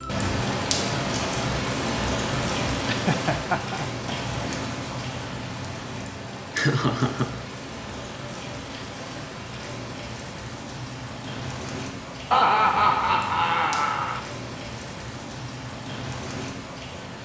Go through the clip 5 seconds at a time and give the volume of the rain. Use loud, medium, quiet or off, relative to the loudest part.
loud, medium, medium, medium.